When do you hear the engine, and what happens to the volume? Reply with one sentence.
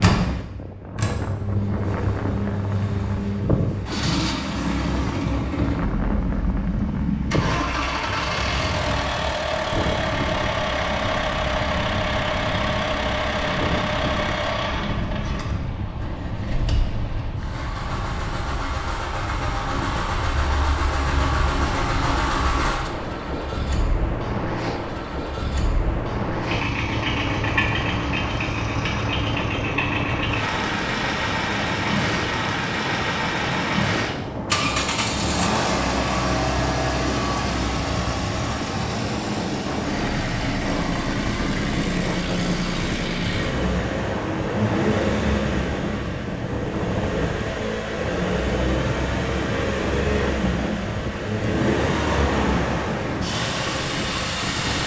You can hear the engine from 0.0 to 54.8 s, at a steady volume.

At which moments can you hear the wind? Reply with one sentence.
You can hear the wind from 0.0 to 54.8 s.